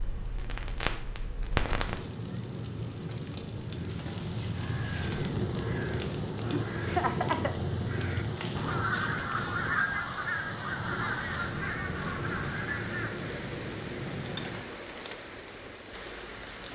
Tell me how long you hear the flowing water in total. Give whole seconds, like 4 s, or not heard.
17 s.